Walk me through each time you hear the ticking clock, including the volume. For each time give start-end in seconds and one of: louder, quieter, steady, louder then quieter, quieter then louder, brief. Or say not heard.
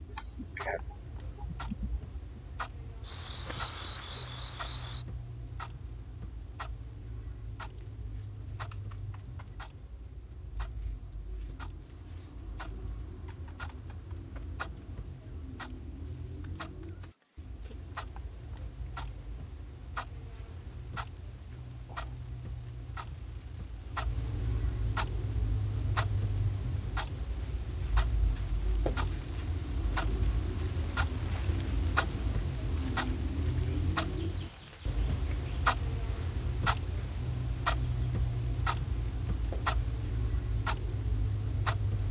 0.0-42.0 louder.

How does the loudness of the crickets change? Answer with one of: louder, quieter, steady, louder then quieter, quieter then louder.
louder.